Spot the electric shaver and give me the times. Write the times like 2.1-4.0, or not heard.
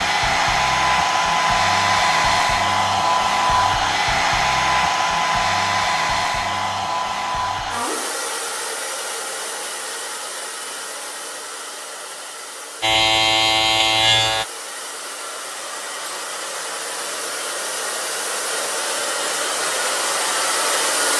12.8-14.4.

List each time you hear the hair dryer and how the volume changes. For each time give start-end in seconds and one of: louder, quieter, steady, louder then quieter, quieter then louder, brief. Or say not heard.
0.0-21.1 quieter then louder.